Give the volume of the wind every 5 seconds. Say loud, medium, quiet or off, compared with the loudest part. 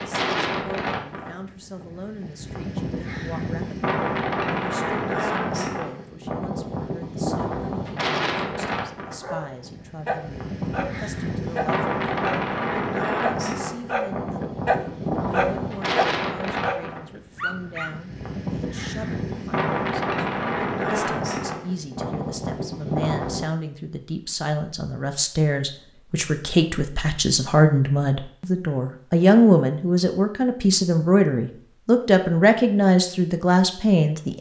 loud, loud, loud, loud, loud, off, off.